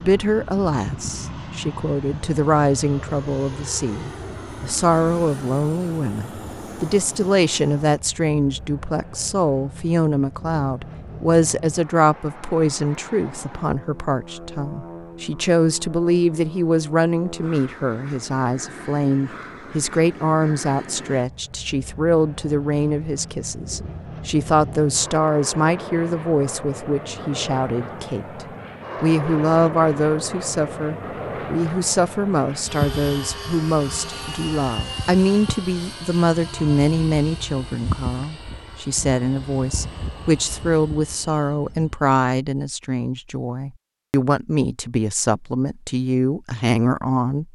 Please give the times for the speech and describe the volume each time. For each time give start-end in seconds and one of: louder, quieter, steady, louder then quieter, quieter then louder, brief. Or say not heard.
0.0-47.5 steady.